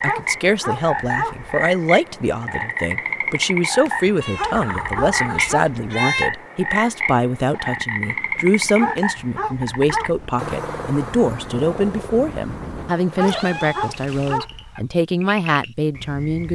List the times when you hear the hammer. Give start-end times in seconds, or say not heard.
not heard.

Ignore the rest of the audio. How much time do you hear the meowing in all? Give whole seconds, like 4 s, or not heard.
3 s.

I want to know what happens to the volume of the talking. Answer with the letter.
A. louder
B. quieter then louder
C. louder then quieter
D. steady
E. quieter
D.